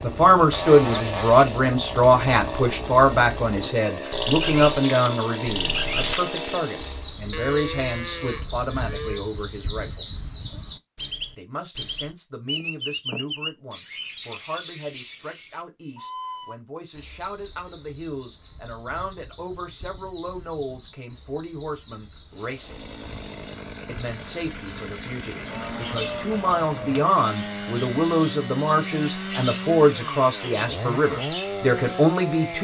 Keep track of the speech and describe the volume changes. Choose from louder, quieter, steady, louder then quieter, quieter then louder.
quieter then louder.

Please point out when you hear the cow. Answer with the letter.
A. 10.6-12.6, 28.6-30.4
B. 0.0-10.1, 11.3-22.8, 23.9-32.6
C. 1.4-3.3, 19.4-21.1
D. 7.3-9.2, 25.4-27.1
D.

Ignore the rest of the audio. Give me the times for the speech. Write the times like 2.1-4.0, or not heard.
0.0-10.1, 11.3-22.8, 23.9-32.6.